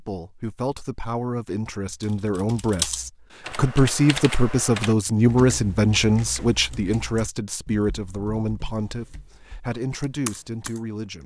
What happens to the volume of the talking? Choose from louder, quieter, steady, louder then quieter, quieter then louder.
louder then quieter.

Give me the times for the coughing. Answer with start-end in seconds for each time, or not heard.
not heard.